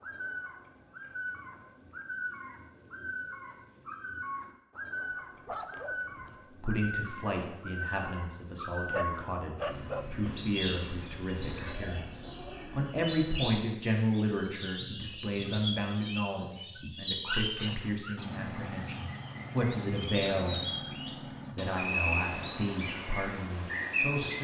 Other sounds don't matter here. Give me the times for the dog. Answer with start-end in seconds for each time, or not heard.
5.0-6.4, 8.8-10.2, 16.8-18.2.